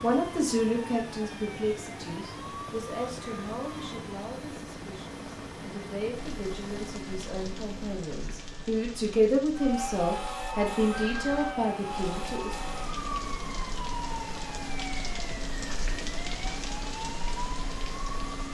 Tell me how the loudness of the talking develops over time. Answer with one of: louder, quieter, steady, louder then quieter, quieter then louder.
quieter then louder.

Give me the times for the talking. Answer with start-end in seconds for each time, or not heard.
0.0-12.5.